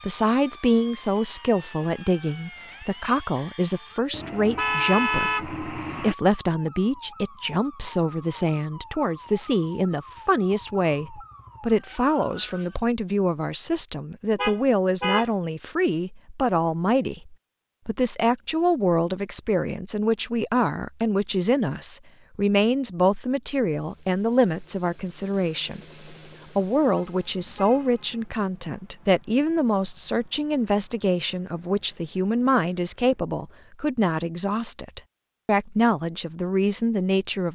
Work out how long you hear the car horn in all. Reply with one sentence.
You can hear the car horn for 4 seconds altogether.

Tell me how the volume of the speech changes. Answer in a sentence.
The loudness of the speech stays about the same.